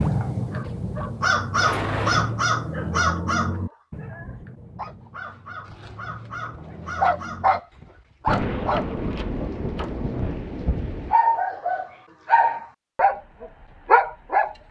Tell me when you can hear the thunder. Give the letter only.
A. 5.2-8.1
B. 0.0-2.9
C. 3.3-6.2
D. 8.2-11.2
D.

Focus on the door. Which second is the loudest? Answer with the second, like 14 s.
2 s.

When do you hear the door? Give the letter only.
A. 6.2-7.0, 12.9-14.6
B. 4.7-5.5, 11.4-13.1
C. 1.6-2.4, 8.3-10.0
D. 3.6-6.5
C.